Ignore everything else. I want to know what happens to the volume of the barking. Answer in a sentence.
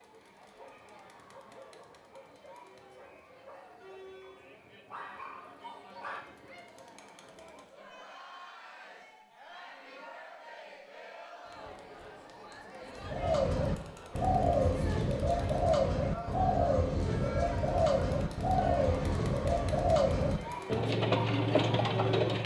The loudness of the barking goes down, then up.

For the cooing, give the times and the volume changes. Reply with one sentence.
You can hear the cooing from 12.9 to 22.4 s, at a steady volume.